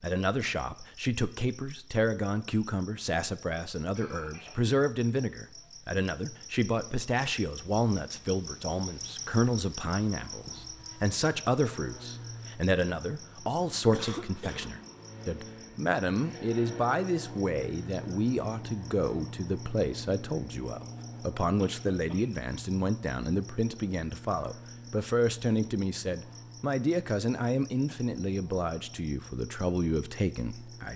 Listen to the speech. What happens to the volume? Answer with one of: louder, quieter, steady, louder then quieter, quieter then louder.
steady.